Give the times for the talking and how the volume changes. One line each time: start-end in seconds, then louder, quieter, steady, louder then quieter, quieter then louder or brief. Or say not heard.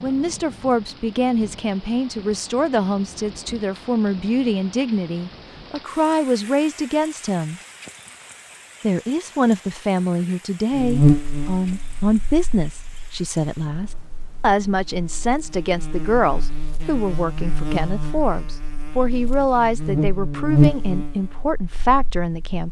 0.0-7.6 steady
8.8-22.6 steady.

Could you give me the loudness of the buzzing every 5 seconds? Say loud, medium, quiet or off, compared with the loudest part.
off, off, loud, medium, loud.